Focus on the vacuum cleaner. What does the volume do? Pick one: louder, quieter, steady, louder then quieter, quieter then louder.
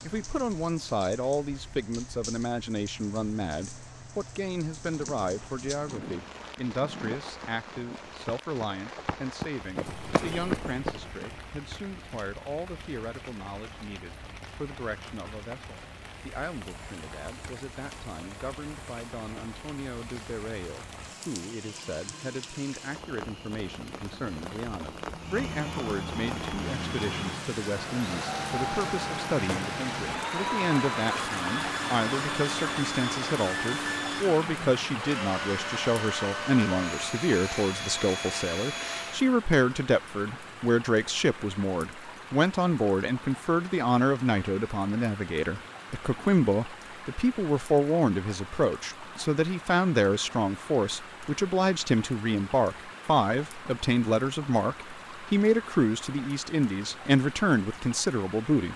louder.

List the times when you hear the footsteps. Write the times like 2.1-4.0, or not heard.
4.8-11.4.